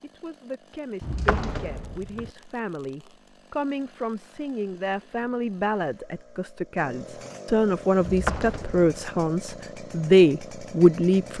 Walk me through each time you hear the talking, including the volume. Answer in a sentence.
You can hear the talking from 0.0 to 11.3 s, getting louder.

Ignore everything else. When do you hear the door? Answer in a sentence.
You can hear the door from 1.0 to 2.3 s and from 8.0 to 8.9 s.